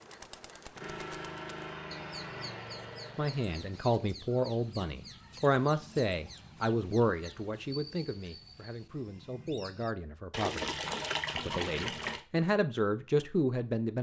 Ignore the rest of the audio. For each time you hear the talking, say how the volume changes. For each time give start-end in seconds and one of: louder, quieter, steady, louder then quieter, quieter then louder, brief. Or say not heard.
3.1-13.9 quieter then louder.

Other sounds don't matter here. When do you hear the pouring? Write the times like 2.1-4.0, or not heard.
10.3-12.2.